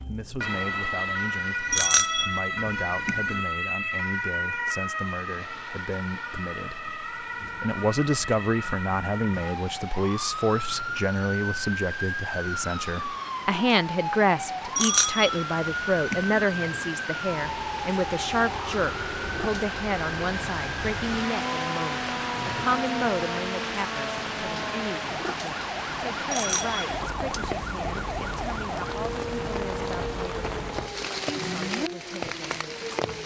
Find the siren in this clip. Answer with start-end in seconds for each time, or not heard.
0.0-33.2.